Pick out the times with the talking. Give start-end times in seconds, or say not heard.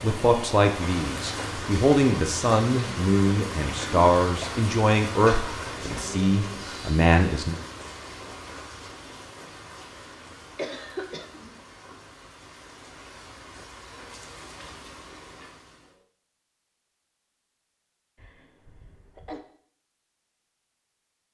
0.0-7.5.